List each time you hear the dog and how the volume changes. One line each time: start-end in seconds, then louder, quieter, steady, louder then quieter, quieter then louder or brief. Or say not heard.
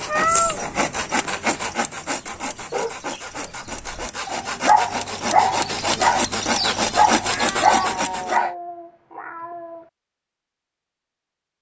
2.5-8.6 louder.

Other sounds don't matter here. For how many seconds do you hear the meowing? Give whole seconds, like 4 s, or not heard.
3 s.